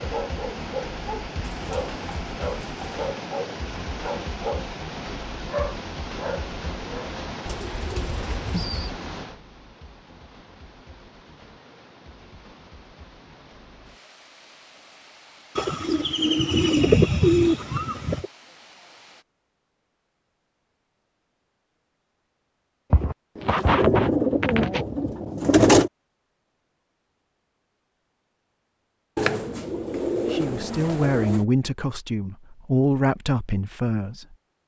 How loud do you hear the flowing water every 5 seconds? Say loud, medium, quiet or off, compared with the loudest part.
loud, loud, quiet, quiet, off, off, off.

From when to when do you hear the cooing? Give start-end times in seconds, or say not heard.
1.4-3.0, 7.5-8.9, 15.6-18.2, 22.9-25.9, 29.1-31.4.